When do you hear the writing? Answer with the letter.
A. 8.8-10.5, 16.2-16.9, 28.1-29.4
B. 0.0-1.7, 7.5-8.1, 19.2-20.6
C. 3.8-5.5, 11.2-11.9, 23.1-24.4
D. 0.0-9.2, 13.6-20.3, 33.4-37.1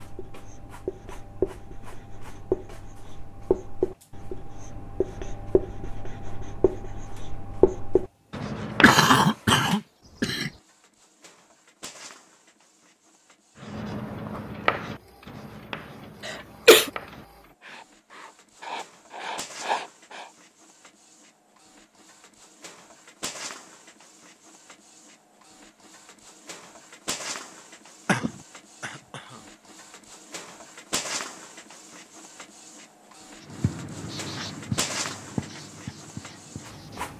D.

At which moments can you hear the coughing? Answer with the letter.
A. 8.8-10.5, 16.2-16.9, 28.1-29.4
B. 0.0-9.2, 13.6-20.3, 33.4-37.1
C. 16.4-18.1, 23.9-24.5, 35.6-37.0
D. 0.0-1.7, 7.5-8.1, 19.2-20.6
A.